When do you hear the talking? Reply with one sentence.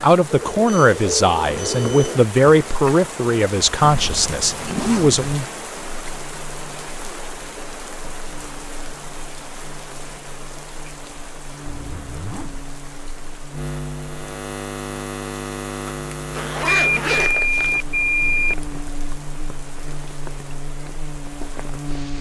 You can hear the talking from 0.0 to 5.2 s.